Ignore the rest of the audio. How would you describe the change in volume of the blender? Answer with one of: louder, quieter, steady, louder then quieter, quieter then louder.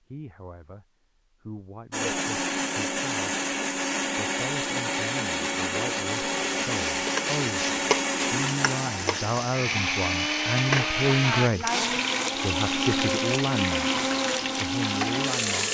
steady.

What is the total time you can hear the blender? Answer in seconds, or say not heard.
14 s.